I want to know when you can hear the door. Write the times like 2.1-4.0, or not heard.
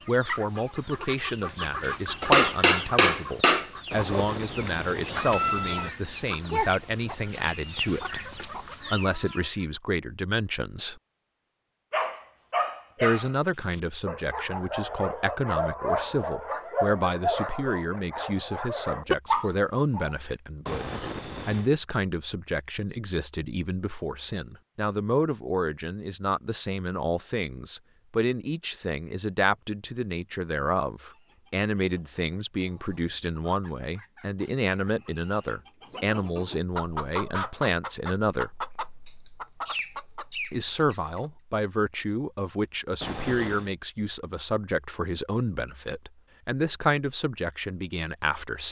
not heard.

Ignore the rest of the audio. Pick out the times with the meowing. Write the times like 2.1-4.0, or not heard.
3.9-5.9, 20.6-21.7, 43.0-43.7.